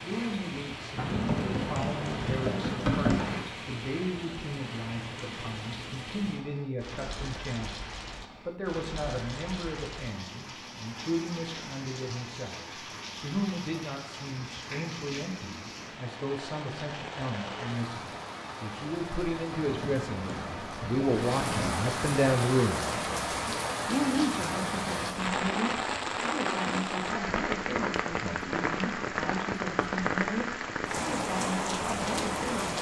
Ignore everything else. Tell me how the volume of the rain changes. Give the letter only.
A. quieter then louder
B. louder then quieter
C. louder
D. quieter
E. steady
C.